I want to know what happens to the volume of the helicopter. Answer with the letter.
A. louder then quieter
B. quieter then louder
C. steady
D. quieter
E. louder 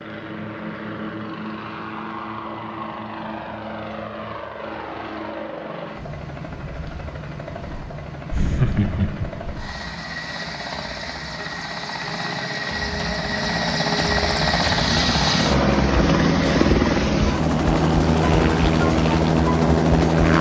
E.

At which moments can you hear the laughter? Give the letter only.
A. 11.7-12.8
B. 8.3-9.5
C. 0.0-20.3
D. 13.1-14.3
B.